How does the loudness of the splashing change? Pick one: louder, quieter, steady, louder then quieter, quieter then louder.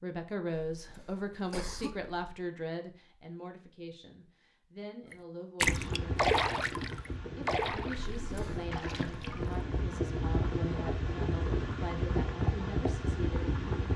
quieter.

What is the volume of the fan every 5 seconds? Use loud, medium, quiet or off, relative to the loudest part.
off, medium, loud.